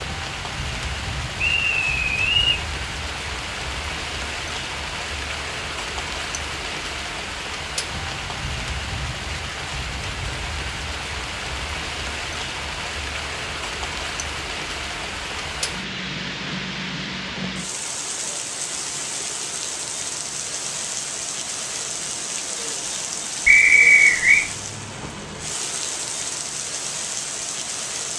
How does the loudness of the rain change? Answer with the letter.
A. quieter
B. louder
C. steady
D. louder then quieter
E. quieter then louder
C.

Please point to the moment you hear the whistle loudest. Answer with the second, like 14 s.
24 s.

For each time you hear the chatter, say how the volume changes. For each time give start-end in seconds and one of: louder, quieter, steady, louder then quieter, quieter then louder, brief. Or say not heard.
not heard.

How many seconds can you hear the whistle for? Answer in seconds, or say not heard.
2 s.